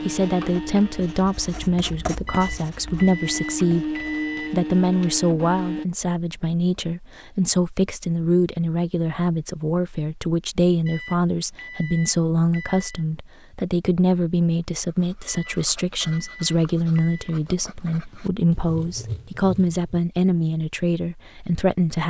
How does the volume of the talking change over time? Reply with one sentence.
The volume of the talking stays about the same.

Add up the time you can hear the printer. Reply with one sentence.
The printer can be heard for 6 seconds in total.